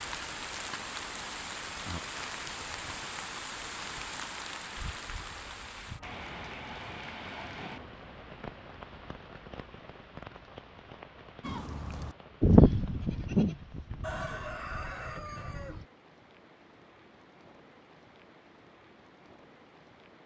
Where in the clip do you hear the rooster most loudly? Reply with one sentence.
The volume of the rooster peaks at 14 seconds.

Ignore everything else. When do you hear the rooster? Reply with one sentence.
The rooster can be heard from 14.0 to 15.8 s.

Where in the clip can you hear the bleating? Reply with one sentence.
The bleating can be heard from 11.4 to 15.8 s.